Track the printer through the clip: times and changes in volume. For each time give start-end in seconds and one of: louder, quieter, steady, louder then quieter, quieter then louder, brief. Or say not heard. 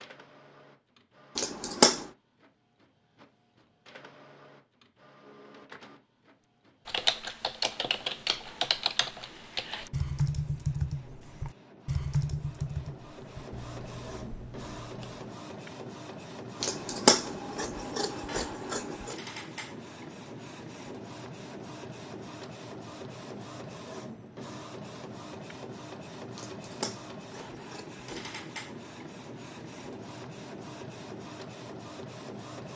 0.0-32.7 louder.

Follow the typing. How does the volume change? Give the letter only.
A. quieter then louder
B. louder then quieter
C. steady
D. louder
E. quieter
E.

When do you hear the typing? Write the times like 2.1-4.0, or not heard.
6.8-15.2.